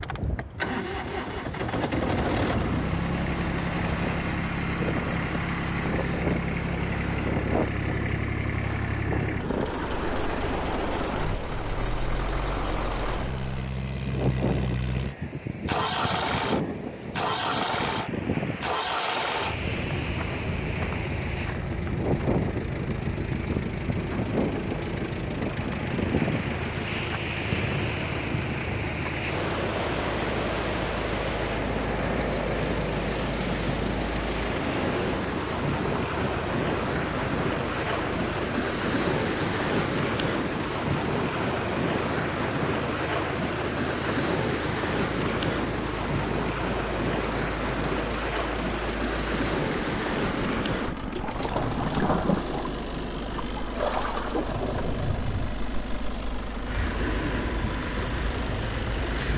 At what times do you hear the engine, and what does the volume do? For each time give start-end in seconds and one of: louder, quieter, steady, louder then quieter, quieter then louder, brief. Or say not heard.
0.0-59.3 quieter.